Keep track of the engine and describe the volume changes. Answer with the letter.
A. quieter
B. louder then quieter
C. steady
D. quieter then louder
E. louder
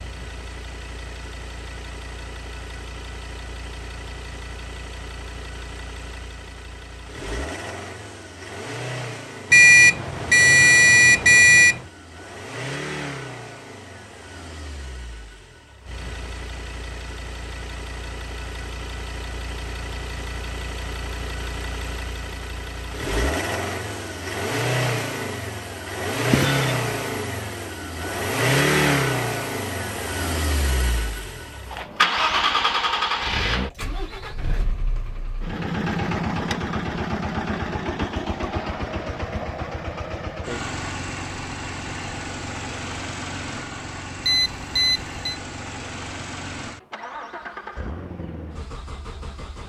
B.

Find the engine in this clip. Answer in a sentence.
You can hear the engine from 0.0 to 49.6 s.